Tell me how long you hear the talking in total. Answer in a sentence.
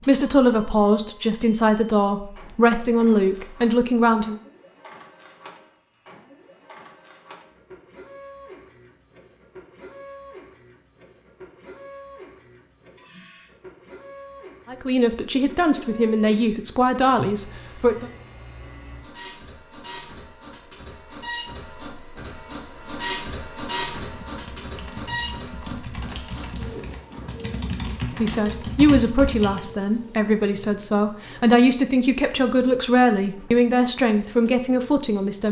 The talking can be heard for 15 seconds in total.